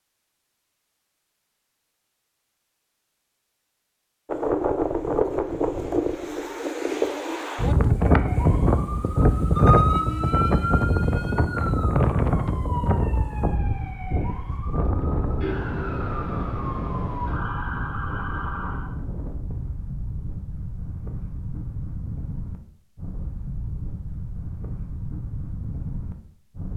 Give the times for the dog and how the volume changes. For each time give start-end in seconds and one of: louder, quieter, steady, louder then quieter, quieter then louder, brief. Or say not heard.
not heard.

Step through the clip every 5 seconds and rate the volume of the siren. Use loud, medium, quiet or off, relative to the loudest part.
off, loud, medium, medium, off, off.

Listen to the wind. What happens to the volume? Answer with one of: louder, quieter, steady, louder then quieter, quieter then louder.
quieter.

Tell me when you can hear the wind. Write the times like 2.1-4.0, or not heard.
4.2-26.7.